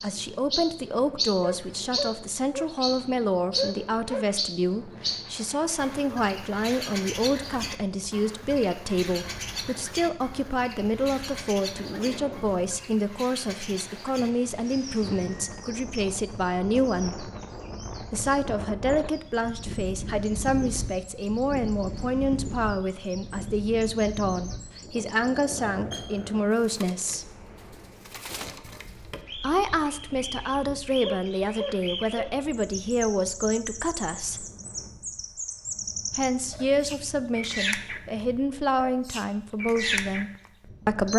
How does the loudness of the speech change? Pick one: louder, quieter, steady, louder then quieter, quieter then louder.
steady.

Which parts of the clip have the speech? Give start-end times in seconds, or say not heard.
0.0-17.3, 18.1-27.2, 29.4-34.5, 36.1-41.1.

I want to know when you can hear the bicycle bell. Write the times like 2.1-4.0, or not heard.
not heard.